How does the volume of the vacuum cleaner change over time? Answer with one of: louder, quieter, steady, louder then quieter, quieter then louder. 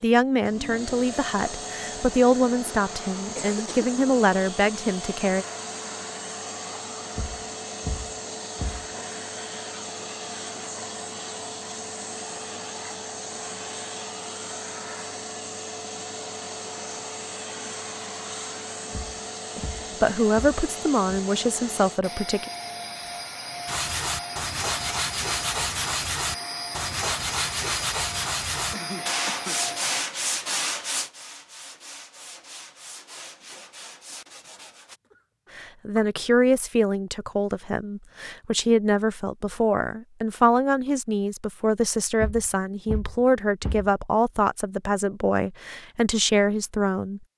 steady.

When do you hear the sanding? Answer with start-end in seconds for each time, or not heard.
23.6-35.0.